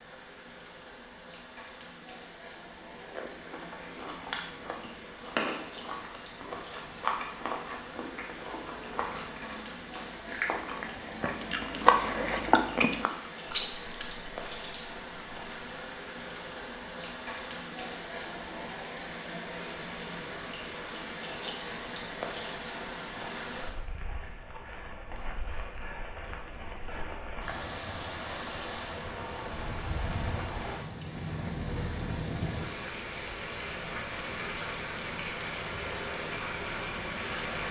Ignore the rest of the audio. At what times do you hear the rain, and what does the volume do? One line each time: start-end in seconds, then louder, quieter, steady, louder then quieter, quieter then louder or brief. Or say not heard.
0.0-37.6 louder.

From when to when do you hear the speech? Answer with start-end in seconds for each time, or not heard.
not heard.